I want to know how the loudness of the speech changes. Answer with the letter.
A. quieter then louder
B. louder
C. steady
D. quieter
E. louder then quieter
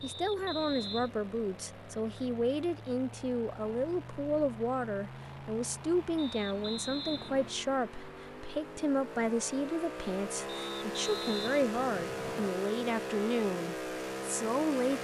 C.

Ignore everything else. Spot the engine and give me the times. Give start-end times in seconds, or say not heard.
0.0-14.9.